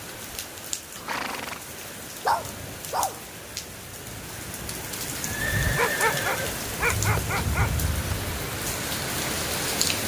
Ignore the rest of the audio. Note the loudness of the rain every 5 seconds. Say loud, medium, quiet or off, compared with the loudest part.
medium, loud.